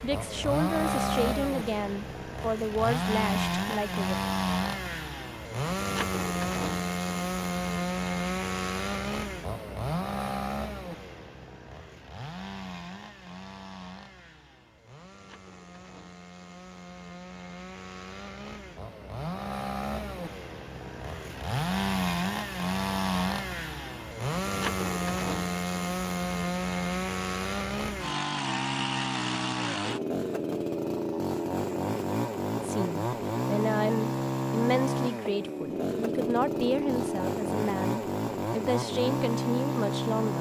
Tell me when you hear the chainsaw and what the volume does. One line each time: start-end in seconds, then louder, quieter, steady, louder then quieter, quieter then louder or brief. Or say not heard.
0.0-40.3 quieter then louder.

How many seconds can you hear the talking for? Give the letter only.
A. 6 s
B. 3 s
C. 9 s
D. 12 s
D.